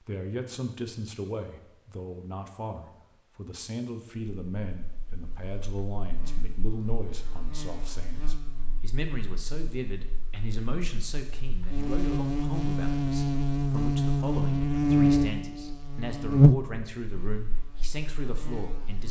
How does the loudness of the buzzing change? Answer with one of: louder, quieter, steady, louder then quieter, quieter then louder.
louder.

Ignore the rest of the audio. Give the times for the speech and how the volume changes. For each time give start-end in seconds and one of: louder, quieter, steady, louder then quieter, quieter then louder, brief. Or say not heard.
0.0-19.0 steady.